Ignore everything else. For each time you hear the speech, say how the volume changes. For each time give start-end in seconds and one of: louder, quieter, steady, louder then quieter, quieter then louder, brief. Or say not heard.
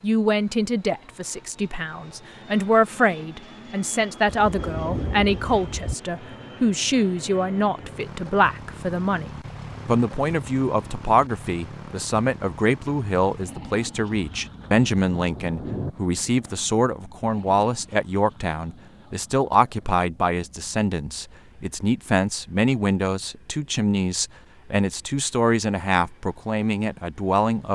0.0-27.6 steady.